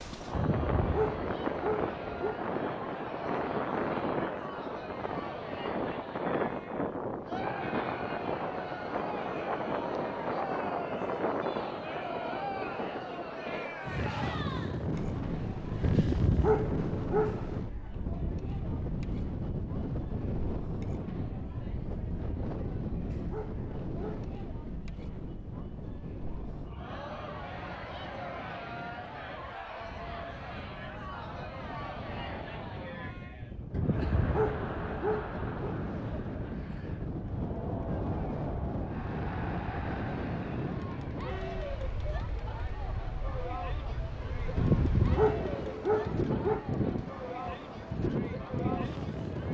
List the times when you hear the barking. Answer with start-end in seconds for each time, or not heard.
0.3-2.4, 15.8-17.6, 22.7-24.2, 33.7-35.5, 44.5-46.6.